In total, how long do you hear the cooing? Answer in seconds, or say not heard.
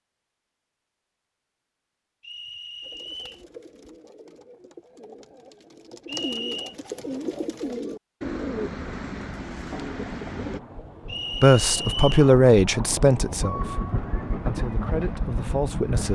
8 s.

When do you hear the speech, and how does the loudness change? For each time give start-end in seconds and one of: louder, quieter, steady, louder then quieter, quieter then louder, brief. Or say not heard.
11.4-16.0 quieter then louder.